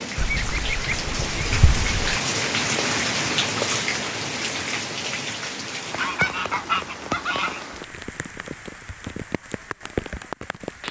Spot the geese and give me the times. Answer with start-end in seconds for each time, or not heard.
0.1-2.2, 6.0-7.7.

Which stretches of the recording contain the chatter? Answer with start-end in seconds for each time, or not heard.
not heard.